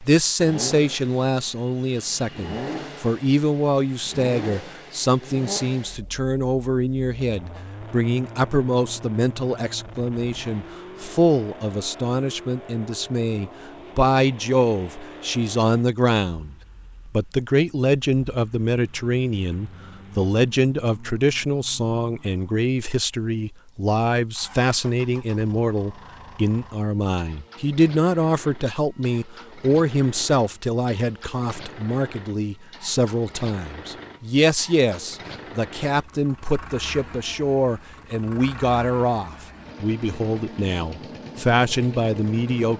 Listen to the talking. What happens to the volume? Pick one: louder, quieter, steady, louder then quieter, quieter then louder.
steady.